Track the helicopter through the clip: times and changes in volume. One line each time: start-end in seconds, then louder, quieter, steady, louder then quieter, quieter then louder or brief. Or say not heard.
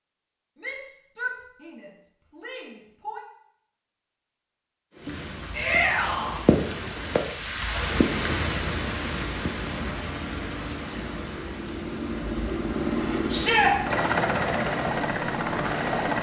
9.6-16.1 louder.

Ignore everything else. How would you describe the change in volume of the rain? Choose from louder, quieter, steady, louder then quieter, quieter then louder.
quieter.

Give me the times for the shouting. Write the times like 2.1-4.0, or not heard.
0.6-3.2, 5.5-6.4, 13.3-13.8.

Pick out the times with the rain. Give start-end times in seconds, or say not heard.
4.9-16.1.